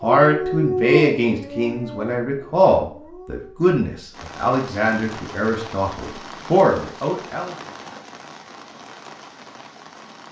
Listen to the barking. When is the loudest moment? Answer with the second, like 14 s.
1 s.